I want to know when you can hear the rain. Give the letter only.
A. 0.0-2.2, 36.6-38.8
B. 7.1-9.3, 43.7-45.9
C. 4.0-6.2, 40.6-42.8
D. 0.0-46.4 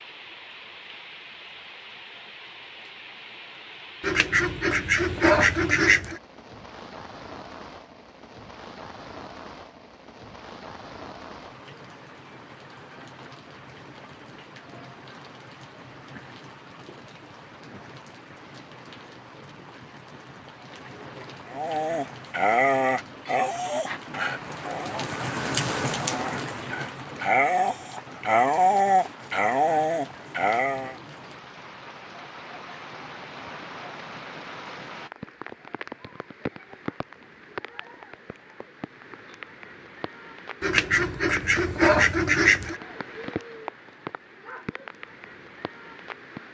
D.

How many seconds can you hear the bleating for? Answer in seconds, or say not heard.
not heard.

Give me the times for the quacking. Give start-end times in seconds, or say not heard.
4.0-6.2, 40.6-42.8.